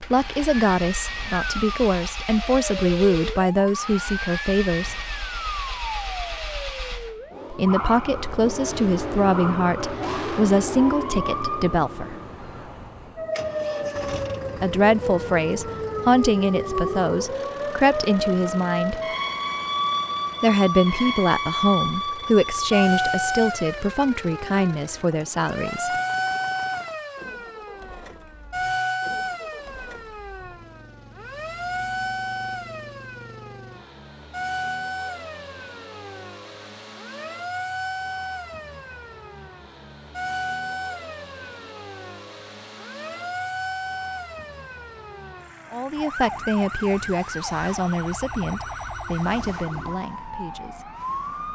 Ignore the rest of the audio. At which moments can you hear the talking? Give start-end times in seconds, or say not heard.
0.0-5.0, 7.5-12.2, 14.6-19.0, 20.4-25.9, 45.7-50.9.